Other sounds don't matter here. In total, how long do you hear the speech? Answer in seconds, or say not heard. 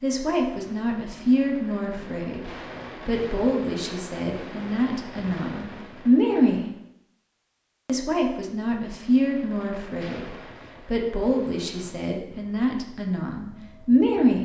13 s.